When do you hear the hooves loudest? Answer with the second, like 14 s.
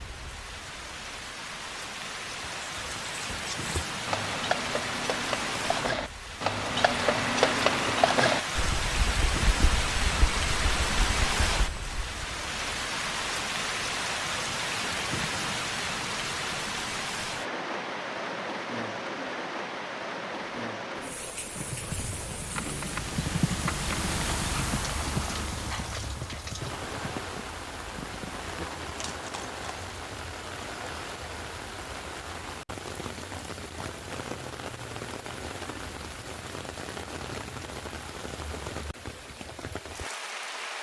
8 s.